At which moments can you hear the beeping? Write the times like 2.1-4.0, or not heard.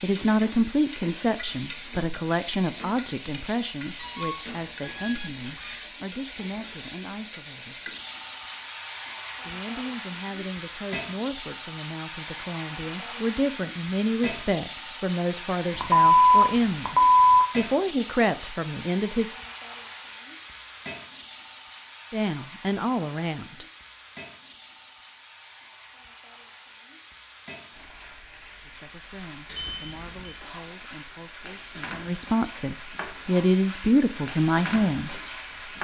4.0-5.8, 15.8-17.4, 29.4-30.4.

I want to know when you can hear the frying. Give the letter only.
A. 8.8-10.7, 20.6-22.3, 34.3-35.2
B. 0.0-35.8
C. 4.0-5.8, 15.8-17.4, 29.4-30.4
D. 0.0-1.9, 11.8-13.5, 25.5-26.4
B.